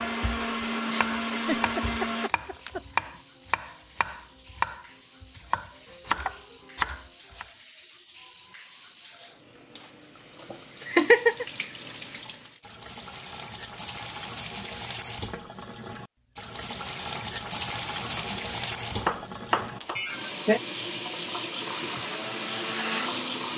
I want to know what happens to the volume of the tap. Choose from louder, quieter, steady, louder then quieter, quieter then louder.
louder.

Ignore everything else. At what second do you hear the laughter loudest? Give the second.
11 s.